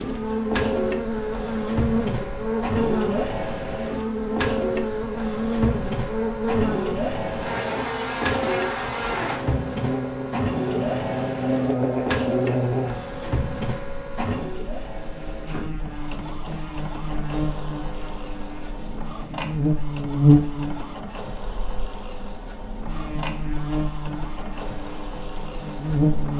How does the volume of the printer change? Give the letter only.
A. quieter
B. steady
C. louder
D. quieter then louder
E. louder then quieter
A.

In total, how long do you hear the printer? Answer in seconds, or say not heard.
26 s.